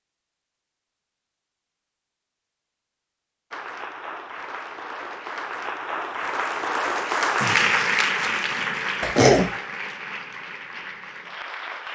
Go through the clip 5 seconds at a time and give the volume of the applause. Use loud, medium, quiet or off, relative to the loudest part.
medium, loud, medium.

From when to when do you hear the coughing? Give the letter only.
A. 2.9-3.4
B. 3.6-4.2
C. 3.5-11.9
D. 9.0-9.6
D.